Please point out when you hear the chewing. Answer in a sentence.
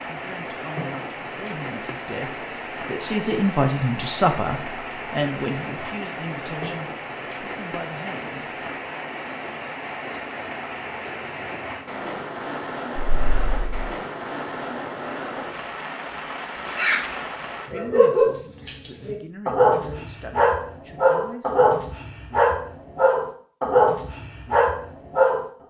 You can't hear the chewing here.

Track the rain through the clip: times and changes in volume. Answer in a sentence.
The rain can be heard from 0.0 to 17.7 s, at a steady volume.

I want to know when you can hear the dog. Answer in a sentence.
The dog can be heard from 16.6 to 25.4 s.